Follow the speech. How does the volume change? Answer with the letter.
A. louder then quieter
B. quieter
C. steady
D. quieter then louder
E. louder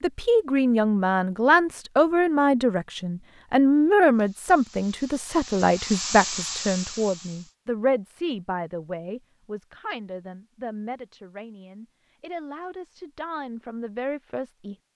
B.